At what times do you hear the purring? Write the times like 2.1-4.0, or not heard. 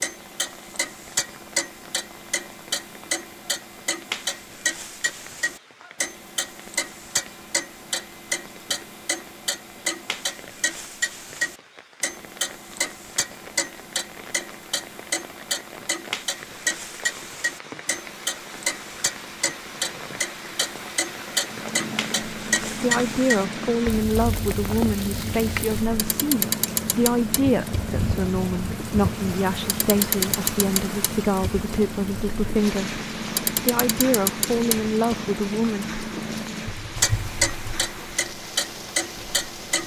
21.4-39.8.